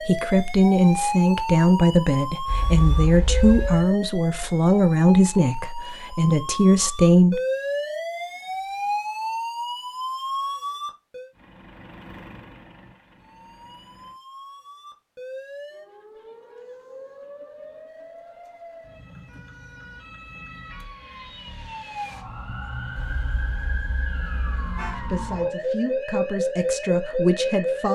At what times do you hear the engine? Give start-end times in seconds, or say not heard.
11.3-14.2.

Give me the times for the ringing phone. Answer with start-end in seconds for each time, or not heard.
not heard.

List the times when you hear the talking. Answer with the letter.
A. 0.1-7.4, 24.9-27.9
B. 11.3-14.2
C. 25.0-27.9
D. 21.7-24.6
A.